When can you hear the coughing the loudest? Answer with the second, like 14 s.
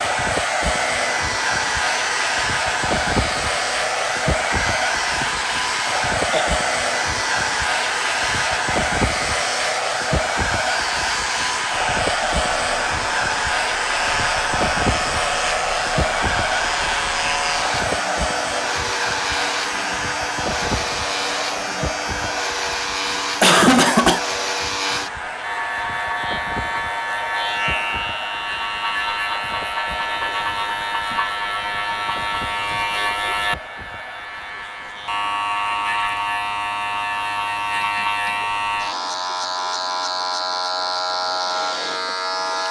24 s.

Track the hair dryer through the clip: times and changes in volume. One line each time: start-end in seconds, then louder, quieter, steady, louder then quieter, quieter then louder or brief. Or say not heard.
0.0-42.6 quieter.